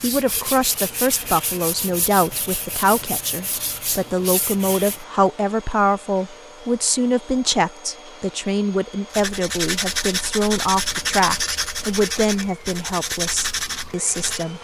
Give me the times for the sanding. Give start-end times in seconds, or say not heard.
0.0-5.0, 9.1-14.4.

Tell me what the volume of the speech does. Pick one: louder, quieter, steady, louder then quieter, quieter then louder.
steady.